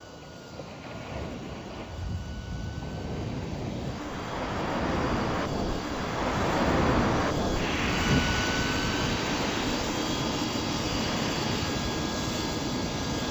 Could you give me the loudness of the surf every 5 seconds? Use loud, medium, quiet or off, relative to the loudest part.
medium, loud, medium.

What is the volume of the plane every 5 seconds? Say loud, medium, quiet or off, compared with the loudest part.
quiet, loud, loud.